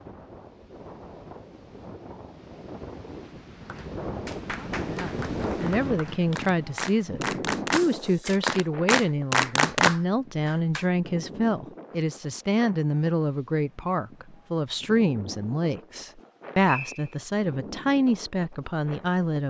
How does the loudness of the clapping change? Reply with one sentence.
The loudness of the clapping goes up.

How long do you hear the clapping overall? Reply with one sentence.
You can hear the clapping for 7 seconds altogether.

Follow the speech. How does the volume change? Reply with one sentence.
The loudness of the speech stays about the same.